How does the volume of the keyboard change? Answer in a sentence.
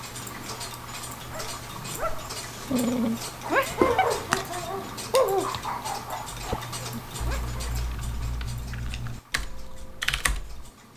The volume of the keyboard goes up.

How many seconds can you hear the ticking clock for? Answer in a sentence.
The ticking clock can be heard for 11 seconds in total.